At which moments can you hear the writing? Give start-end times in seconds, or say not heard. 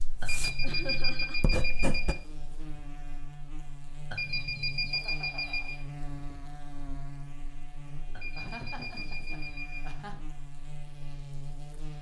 0.0-2.1.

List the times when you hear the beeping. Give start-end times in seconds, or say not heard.
0.2-2.1, 4.1-5.8, 8.1-9.9.